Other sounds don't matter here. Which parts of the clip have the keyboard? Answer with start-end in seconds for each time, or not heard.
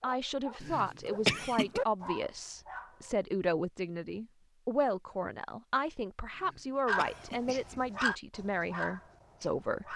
not heard.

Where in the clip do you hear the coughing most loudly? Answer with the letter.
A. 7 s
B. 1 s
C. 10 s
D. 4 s
B.